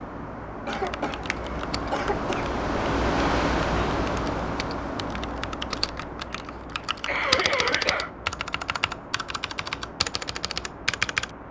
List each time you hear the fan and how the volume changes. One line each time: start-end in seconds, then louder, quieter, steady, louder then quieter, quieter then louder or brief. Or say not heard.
0.0-11.4 louder then quieter.